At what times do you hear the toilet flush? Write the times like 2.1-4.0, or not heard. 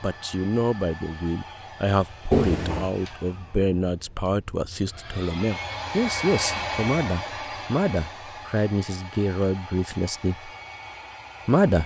2.3-2.9.